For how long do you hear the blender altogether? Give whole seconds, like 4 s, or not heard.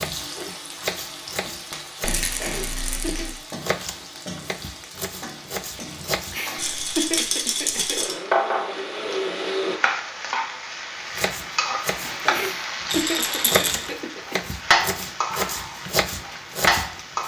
2 s.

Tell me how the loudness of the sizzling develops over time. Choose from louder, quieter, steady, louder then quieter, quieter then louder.
louder.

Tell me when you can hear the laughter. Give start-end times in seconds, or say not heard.
2.4-3.3, 6.3-8.0, 12.3-14.3.